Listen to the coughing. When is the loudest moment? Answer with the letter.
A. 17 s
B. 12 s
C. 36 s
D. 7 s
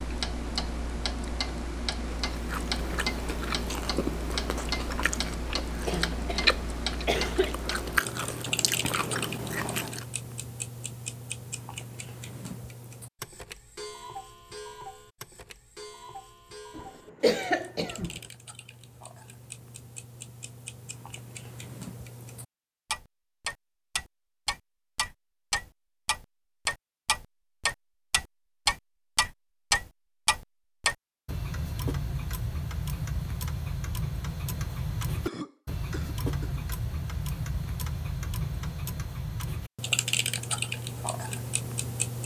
A.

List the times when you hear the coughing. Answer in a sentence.
The coughing can be heard from 5.8 to 7.5 s, from 16.8 to 18.2 s and from 35.2 to 36.6 s.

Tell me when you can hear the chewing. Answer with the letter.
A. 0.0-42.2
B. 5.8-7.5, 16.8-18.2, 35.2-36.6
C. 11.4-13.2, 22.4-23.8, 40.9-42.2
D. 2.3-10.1
D.